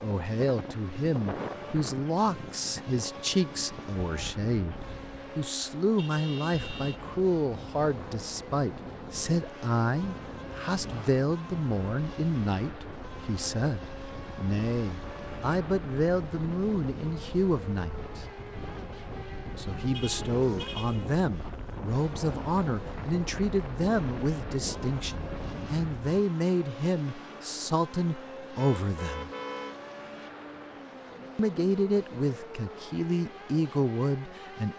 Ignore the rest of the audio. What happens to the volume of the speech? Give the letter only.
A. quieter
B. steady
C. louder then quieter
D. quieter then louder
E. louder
B.